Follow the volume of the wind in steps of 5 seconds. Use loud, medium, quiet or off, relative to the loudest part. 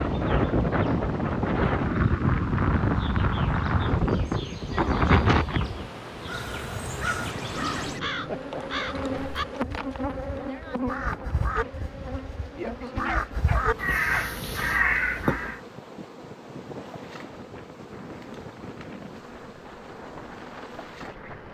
loud, loud, quiet, quiet, quiet.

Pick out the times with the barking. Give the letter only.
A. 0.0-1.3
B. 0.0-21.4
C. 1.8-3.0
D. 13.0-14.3
D.